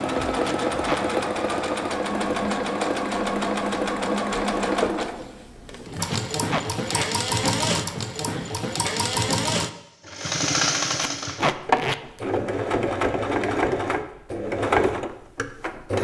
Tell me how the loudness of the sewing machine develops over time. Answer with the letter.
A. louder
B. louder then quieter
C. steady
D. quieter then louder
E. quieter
C.